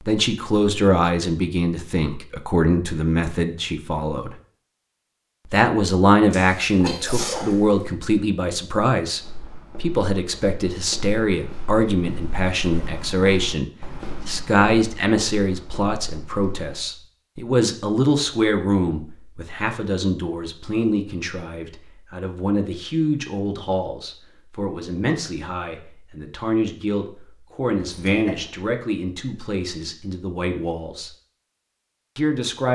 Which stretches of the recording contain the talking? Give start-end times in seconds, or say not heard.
0.1-4.3, 5.5-31.1, 32.1-32.7.